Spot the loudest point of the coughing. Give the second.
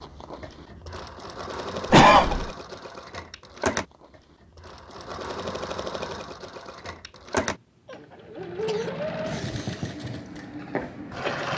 2 s.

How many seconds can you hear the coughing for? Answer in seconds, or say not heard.
3 s.